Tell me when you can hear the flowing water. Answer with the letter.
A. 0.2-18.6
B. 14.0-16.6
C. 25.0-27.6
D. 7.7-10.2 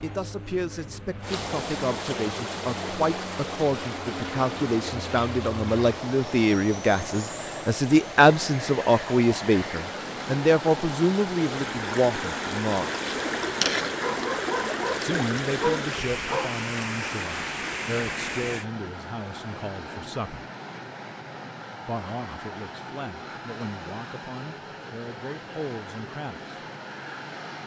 A.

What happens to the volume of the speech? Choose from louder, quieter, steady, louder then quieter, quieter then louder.
louder then quieter.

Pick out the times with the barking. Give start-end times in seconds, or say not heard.
14.0-16.6.